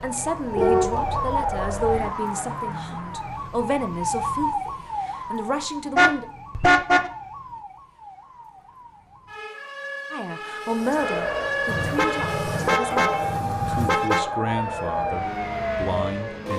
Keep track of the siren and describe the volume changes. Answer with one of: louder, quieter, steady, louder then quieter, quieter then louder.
quieter then louder.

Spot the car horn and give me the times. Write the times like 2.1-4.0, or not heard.
0.6-2.0, 6.0-7.1, 11.7-14.2.